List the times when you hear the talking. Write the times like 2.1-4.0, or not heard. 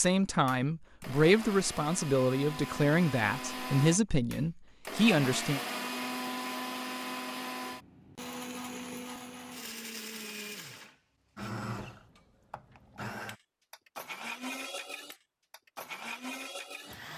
0.0-5.6.